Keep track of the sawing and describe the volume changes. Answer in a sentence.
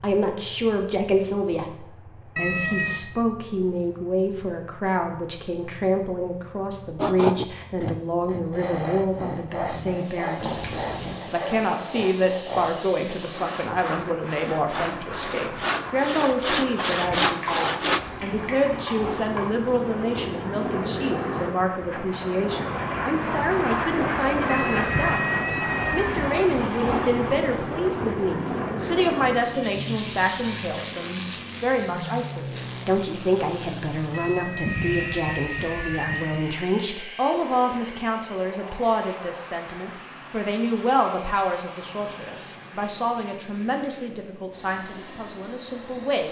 The volume of the sawing goes up.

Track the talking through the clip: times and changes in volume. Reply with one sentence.
The talking can be heard from 0.0 to 25.2 s, at a steady volume; and from 25.9 to 46.2 s, getting quieter.